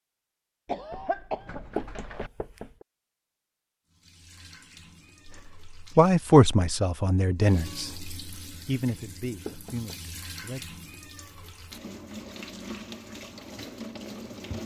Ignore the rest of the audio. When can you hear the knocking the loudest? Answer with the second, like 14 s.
2 s.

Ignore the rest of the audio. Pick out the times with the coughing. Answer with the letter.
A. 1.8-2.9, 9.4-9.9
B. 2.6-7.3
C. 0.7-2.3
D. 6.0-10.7
C.